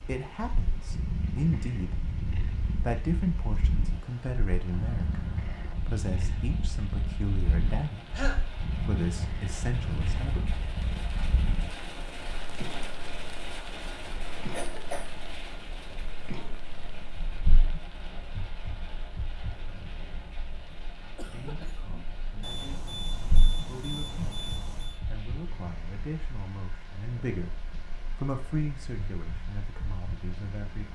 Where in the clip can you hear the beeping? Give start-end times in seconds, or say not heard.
22.4-25.0.